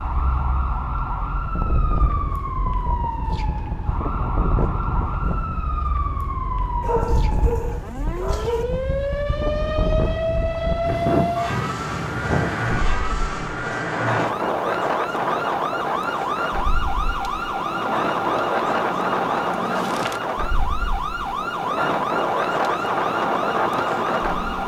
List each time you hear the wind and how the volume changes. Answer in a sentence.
You can hear the wind from 0.0 to 24.5 s, getting louder.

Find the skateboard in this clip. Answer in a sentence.
The skateboard can't be heard in this clip.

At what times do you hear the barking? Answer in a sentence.
You can hear the barking from 6.8 to 8.7 s.